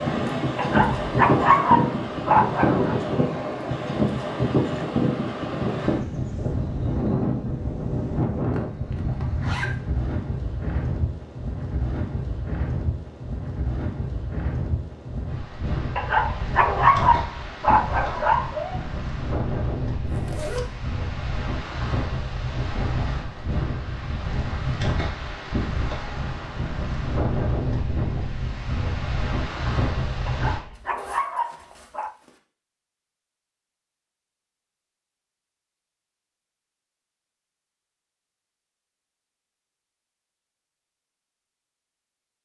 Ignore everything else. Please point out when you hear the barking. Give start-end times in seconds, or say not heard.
0.6-3.0, 15.9-18.8, 30.2-32.1.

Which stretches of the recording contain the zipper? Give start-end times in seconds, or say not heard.
8.5-9.8, 20.1-20.6, 30.7-32.4.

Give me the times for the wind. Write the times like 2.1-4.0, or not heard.
0.0-30.6.